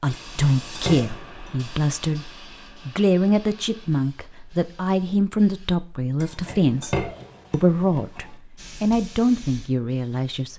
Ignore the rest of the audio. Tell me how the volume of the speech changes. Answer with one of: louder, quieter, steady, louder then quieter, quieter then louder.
steady.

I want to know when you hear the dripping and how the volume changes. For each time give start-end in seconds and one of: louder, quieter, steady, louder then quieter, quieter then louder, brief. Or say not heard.
not heard.